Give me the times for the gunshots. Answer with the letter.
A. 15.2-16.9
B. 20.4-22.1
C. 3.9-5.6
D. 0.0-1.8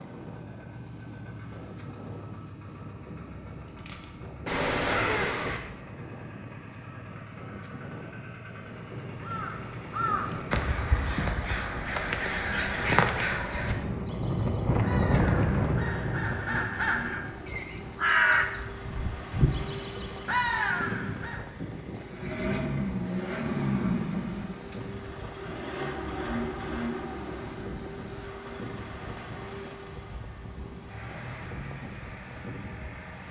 C.